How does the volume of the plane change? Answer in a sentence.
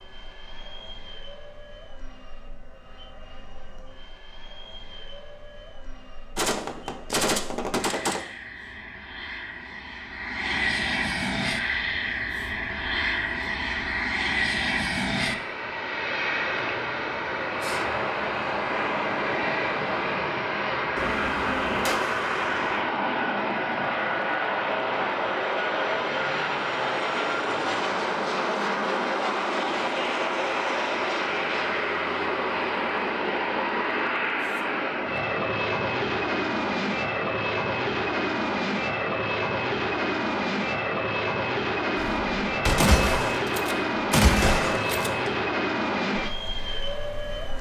The loudness of the plane goes up.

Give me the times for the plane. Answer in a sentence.
The plane can be heard from 0.0 to 47.5 s.